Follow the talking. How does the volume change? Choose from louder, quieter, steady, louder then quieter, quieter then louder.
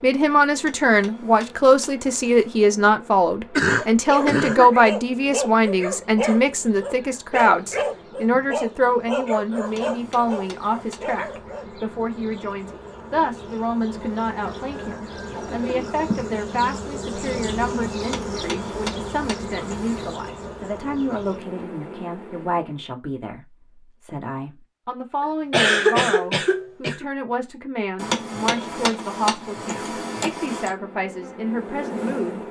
quieter.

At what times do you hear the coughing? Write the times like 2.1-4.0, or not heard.
3.5-4.8, 15.3-15.9, 25.2-27.1.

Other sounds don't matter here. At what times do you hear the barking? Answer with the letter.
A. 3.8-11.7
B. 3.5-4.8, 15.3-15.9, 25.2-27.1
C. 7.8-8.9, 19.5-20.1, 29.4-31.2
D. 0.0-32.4
A.